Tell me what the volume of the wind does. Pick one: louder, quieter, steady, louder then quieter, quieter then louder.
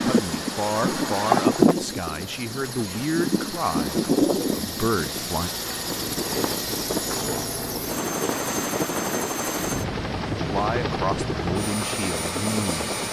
quieter.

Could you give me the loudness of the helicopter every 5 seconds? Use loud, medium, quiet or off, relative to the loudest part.
medium, loud, loud.